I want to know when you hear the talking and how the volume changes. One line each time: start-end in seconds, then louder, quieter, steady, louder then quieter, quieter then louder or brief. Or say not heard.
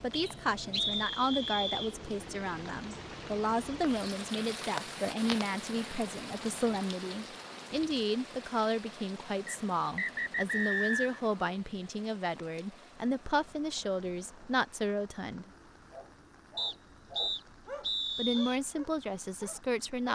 0.0-15.5 steady
18.1-20.1 brief.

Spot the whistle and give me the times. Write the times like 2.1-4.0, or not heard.
0.1-1.9, 9.4-11.2, 16.6-18.6.